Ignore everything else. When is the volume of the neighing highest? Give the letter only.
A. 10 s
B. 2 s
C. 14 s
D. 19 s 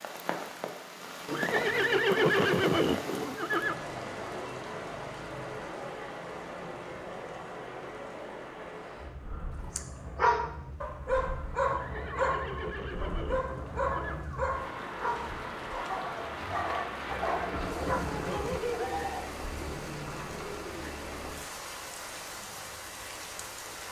B.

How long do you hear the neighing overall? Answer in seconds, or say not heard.
7 s.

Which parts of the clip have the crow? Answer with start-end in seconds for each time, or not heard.
not heard.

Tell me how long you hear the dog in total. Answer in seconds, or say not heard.
9 s.